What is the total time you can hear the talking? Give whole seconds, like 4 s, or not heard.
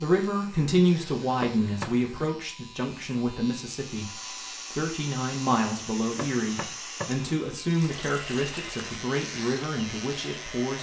11 s.